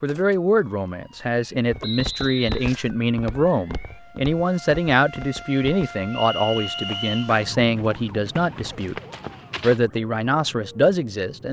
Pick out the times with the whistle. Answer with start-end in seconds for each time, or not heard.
1.8-2.6, 6.1-7.2.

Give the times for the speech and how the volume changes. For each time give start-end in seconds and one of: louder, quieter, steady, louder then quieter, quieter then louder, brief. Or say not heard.
0.0-8.9 steady
9.6-11.4 brief.